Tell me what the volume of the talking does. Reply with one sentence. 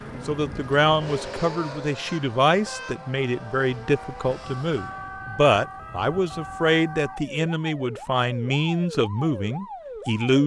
The volume of the talking stays about the same.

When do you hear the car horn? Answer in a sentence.
The car horn can be heard from 2.0 to 3.0 s.